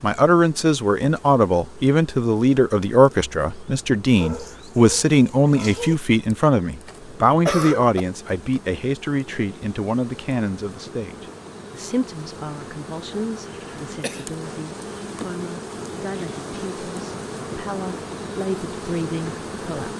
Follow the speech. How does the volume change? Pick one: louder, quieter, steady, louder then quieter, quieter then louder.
quieter.